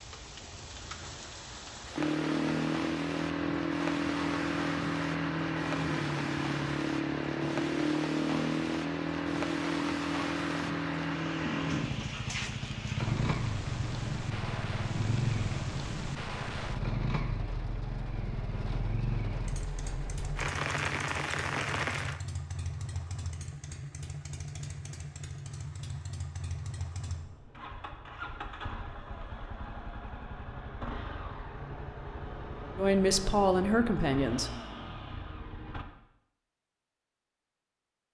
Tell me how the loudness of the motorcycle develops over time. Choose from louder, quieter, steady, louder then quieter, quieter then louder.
quieter.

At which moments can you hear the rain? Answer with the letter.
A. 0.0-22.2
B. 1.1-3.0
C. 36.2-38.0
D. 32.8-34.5
A.